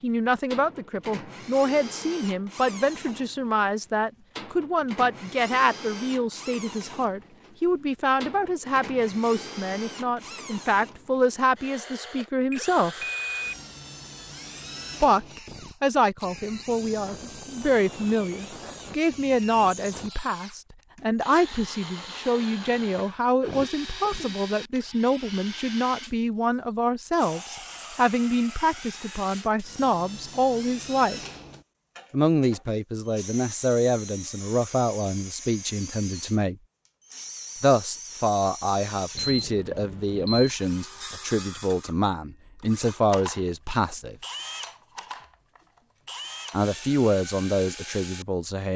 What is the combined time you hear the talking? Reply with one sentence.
The talking can be heard for 42 seconds in total.